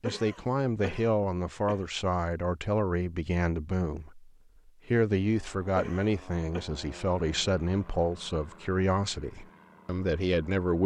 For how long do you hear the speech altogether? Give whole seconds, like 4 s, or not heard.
11 s.